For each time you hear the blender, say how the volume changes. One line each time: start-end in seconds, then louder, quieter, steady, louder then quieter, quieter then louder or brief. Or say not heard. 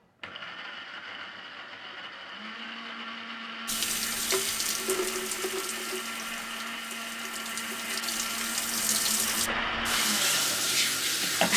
0.0-11.5 louder.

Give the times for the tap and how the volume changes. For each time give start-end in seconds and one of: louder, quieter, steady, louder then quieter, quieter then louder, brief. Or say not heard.
3.6-11.5 quieter then louder.